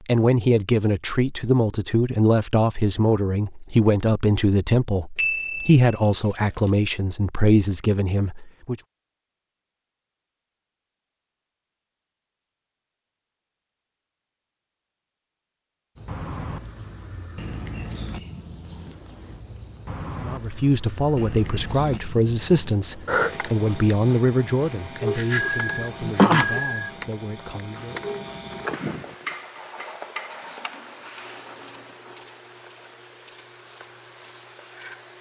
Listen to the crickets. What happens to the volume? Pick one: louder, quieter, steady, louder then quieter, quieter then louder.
quieter then louder.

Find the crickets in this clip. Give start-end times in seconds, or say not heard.
15.9-35.1.